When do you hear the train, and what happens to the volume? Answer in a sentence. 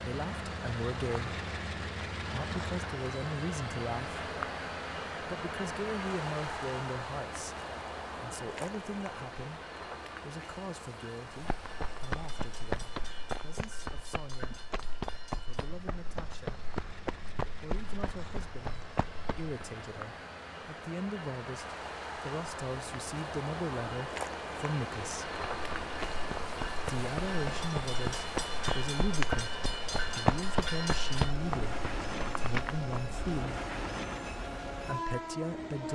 The train can be heard from 0.0 to 35.9 s, getting quieter then louder.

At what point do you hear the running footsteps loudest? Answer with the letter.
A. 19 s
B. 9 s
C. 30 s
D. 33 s
C.